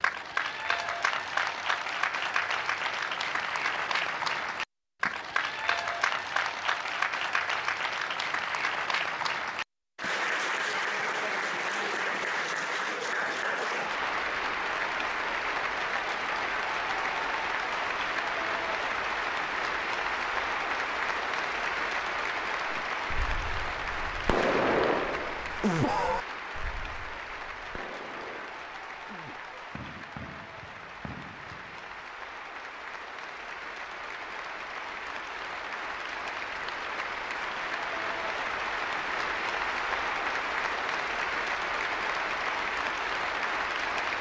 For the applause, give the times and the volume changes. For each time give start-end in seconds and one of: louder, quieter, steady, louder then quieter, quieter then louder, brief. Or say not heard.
0.0-44.1 quieter then louder.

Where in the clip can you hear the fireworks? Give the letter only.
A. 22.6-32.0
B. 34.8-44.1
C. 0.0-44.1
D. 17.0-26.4
A.